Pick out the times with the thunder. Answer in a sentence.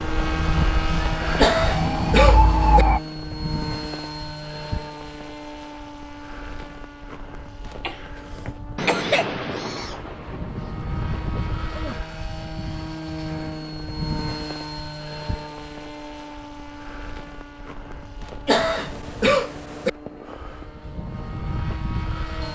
The thunder can be heard from 8.8 to 11.9 s.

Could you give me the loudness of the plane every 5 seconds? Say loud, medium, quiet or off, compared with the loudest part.
loud, medium, loud, medium, medium.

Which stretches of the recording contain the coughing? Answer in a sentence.
The coughing can be heard from 1.4 to 2.9 s, from 7.8 to 9.2 s and from 18.4 to 19.9 s.